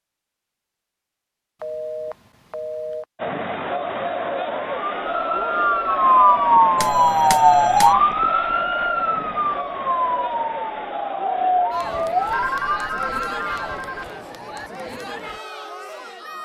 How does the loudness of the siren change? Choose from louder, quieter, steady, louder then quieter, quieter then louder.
quieter.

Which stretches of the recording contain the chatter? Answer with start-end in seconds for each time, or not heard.
3.1-16.4.